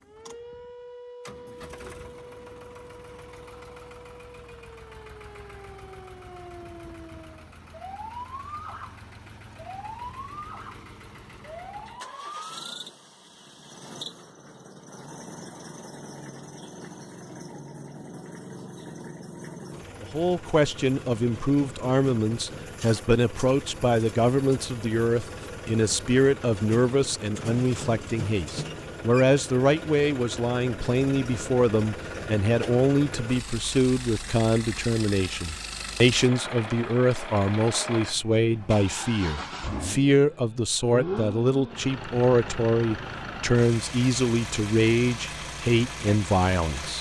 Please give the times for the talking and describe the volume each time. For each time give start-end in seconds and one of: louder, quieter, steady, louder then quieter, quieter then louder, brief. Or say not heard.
20.0-46.9 steady.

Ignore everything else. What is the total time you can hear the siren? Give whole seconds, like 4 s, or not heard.
13 s.